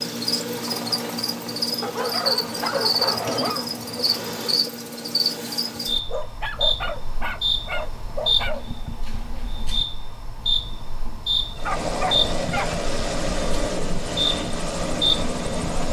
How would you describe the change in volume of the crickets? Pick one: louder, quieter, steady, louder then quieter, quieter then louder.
steady.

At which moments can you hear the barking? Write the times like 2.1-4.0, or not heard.
1.8-3.7, 6.1-8.7, 11.3-12.8.